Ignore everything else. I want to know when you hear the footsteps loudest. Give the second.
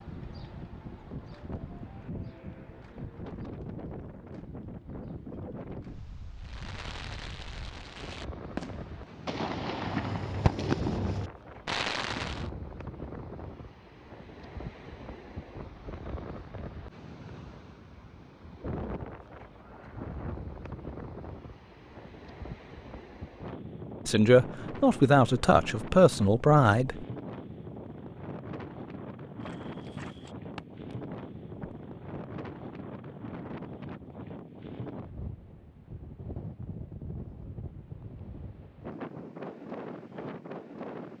30 s.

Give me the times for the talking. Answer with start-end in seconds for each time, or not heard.
24.1-27.1.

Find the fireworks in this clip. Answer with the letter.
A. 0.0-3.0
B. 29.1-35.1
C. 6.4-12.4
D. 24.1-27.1
C.